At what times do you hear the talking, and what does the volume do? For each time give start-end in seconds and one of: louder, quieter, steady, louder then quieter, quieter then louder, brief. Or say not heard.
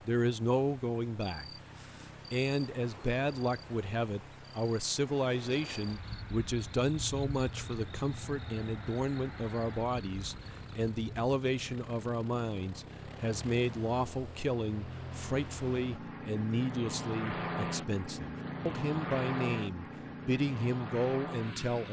0.1-21.8 steady.